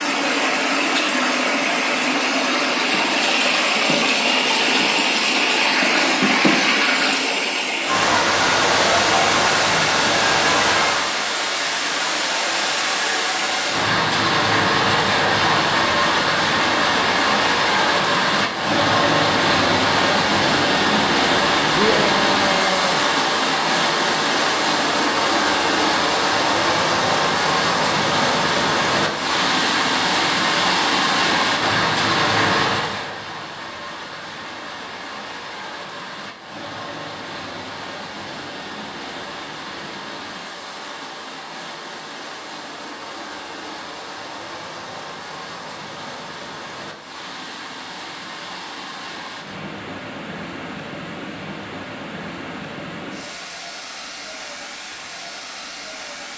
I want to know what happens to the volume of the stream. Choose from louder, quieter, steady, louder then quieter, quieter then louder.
quieter.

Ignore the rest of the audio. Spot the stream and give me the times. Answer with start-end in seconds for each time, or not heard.
0.0-56.3.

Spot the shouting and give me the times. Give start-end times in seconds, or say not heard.
21.8-23.1.